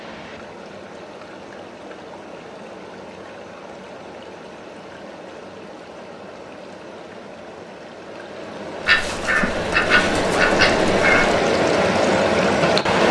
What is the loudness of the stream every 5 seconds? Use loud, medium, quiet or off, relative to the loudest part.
quiet, quiet, loud.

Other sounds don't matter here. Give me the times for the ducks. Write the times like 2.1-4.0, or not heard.
8.8-11.3.